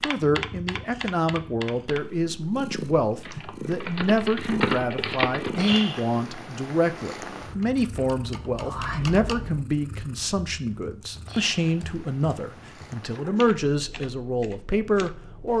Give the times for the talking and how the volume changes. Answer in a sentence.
You can hear the talking from 0.0 to 15.5 s, at a steady volume.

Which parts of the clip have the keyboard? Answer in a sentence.
The keyboard can be heard from 0.0 to 5.8 s and from 7.6 to 15.5 s.